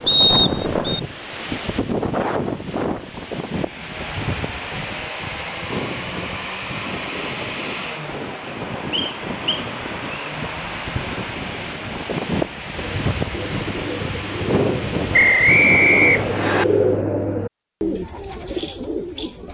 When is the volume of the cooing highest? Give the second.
17 s.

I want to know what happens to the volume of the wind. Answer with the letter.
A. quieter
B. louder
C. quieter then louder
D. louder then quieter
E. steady
C.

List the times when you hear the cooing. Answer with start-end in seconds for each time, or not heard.
12.8-19.5.